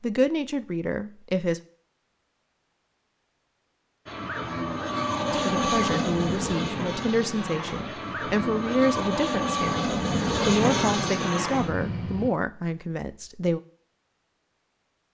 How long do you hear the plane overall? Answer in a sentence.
The plane can be heard for 8 seconds in total.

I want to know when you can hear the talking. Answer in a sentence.
The talking can be heard from 0.0 to 1.6 s and from 5.3 to 13.6 s.